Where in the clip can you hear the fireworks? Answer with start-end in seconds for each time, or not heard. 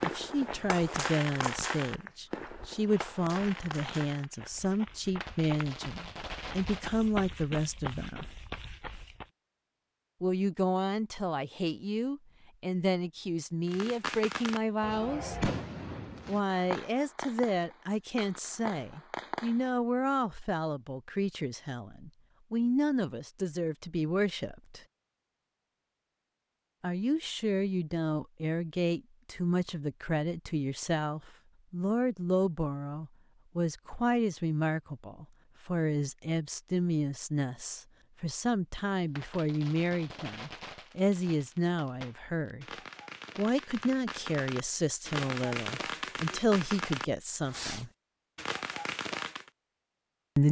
0.0-7.0, 13.7-19.7, 39.1-49.5.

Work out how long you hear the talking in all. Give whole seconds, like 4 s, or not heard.
42 s.